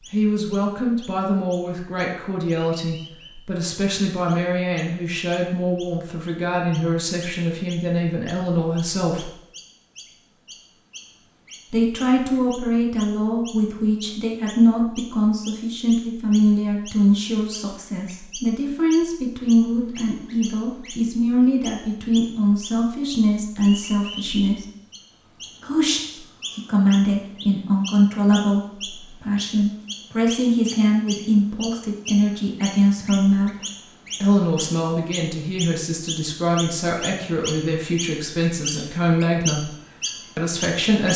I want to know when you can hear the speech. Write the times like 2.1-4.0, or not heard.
0.1-9.3, 11.7-24.6, 25.6-33.5, 34.2-39.7, 40.4-41.1.